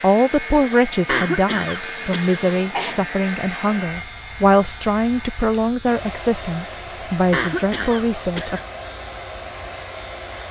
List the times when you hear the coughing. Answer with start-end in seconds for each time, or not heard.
1.1-3.0, 7.3-8.7.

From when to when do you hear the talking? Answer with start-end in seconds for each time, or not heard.
0.0-8.6.